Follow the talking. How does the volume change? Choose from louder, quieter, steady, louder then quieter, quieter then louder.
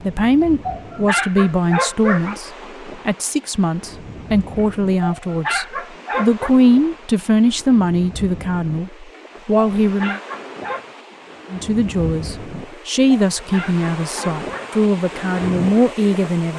steady.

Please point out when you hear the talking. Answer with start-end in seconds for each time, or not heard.
0.0-10.2, 11.5-16.5.